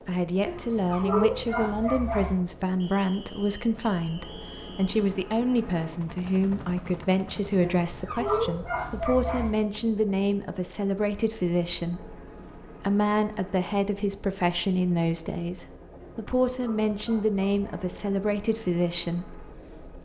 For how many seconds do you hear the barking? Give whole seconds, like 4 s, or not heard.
6 s.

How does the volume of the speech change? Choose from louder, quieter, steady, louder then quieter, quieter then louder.
steady.